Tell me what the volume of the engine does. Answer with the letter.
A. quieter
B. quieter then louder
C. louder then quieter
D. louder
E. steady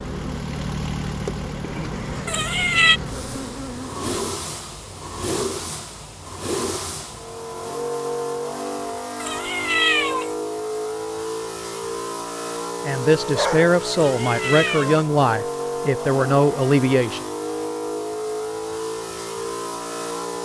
E.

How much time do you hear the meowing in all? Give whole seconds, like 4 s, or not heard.
3 s.